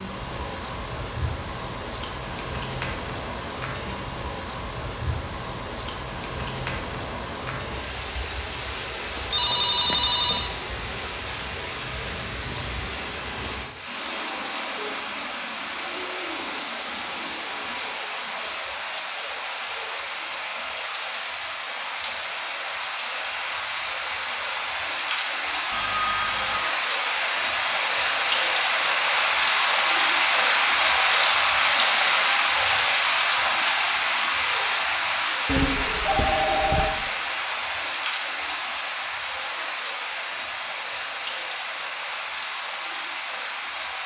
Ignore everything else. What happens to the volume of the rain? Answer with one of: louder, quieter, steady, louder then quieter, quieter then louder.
louder then quieter.